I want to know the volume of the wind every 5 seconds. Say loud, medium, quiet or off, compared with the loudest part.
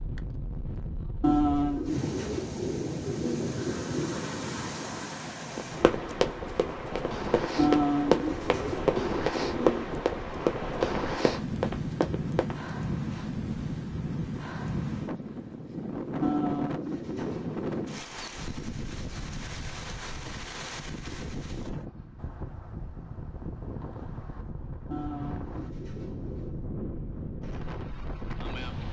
loud, loud, loud, loud, medium, medium.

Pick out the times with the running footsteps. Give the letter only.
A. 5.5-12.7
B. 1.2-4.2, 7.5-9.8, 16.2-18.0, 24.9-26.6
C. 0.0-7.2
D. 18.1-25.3
A.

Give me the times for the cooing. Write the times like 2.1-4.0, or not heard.
1.2-4.2, 7.5-9.8, 16.2-18.0, 24.9-26.6.